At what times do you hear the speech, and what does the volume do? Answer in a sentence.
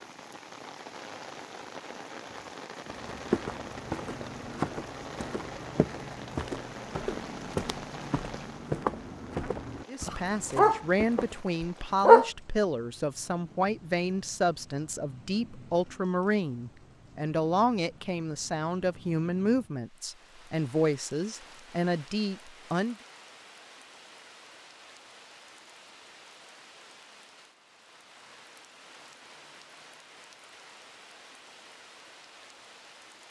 You can hear the speech from 9.8 to 22.9 s, at a steady volume.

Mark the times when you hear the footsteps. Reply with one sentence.
You can hear the footsteps from 2.9 to 11.4 s.